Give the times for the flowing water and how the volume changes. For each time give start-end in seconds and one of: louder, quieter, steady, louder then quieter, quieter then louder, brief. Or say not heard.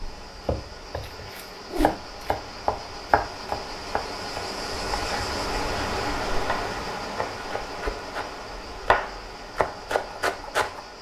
0.0-10.9 louder then quieter.